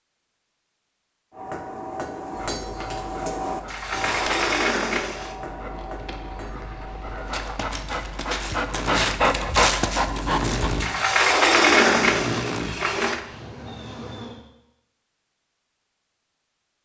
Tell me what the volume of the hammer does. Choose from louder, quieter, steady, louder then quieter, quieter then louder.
quieter.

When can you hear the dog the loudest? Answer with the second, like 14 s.
10 s.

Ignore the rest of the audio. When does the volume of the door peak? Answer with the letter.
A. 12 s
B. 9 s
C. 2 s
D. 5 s
A.